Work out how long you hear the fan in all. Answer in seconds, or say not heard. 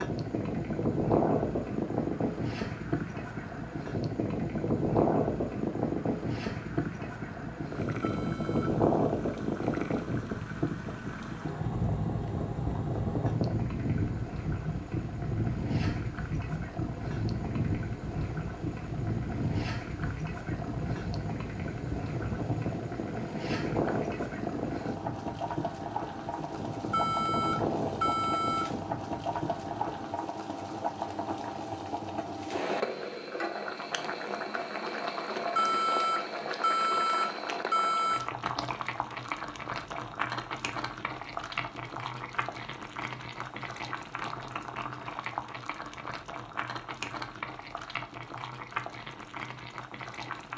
30 s.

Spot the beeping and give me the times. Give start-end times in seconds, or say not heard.
8.0-8.7, 26.9-28.7, 35.5-38.2.